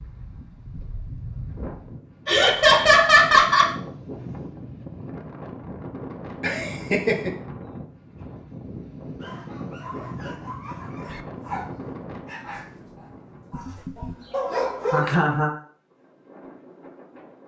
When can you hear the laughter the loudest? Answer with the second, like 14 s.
3 s.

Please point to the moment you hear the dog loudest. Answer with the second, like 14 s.
15 s.